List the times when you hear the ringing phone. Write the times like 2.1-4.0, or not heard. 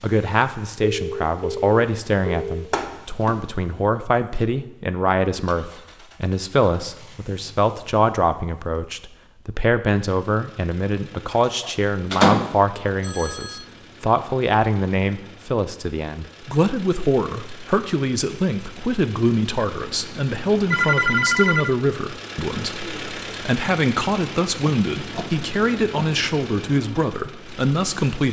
0.4-2.6, 13.0-13.7, 20.7-21.7.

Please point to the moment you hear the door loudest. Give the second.
12 s.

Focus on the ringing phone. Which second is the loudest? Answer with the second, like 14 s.
21 s.